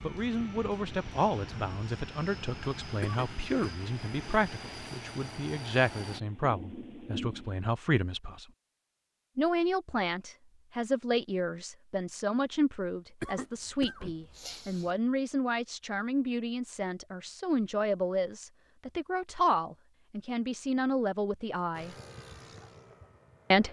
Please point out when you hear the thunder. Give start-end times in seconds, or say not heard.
5.9-7.5.